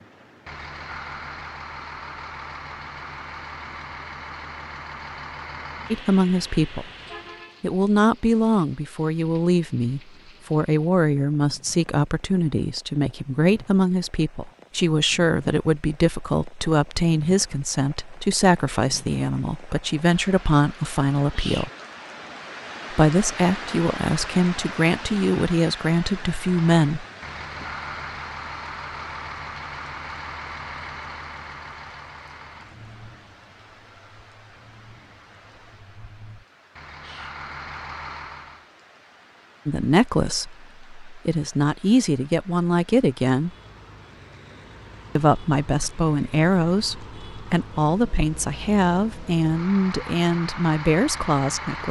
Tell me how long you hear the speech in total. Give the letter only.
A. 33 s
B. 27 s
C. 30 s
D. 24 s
C.